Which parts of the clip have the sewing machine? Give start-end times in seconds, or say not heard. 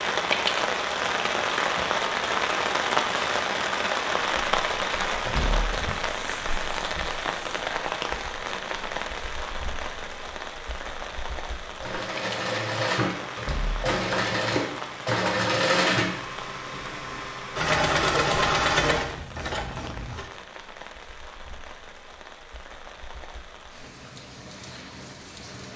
11.8-20.3.